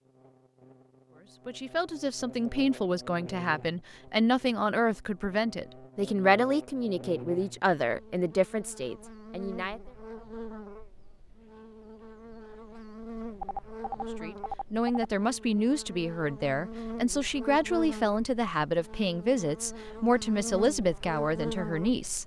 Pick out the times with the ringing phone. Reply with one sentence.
The ringing phone can be heard from 13.4 to 15.1 s.